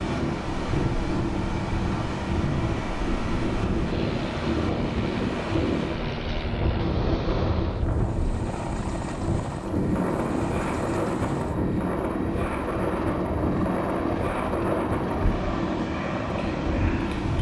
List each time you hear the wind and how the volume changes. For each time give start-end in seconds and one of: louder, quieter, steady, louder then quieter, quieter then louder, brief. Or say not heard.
0.0-17.3 steady.